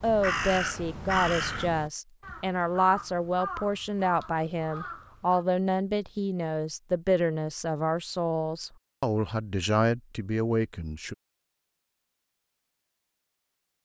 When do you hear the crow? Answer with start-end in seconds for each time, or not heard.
0.0-5.5.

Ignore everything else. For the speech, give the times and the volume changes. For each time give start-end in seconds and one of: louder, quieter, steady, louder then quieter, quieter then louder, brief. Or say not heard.
0.0-11.2 steady.